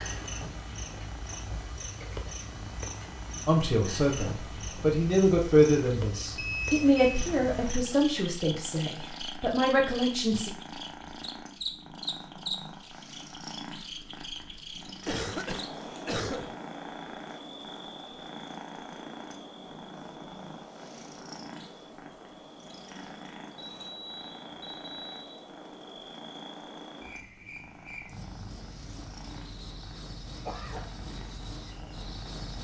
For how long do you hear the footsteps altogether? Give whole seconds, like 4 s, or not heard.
not heard.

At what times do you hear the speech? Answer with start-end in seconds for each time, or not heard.
3.5-10.5.